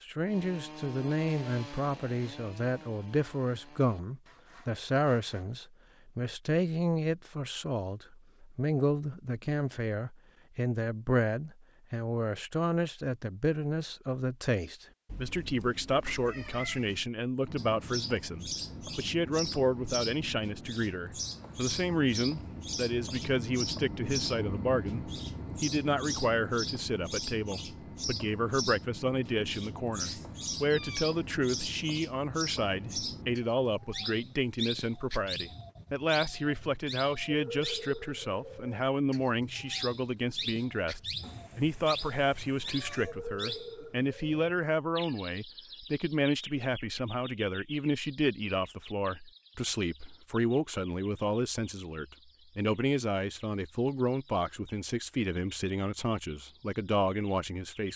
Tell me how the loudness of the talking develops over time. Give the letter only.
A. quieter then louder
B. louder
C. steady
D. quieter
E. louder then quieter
C.